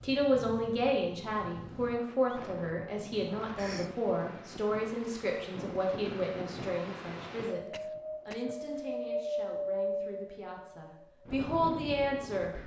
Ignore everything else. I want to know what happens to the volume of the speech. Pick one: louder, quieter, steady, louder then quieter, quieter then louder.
quieter then louder.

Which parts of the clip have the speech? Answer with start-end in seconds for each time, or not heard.
0.0-12.5.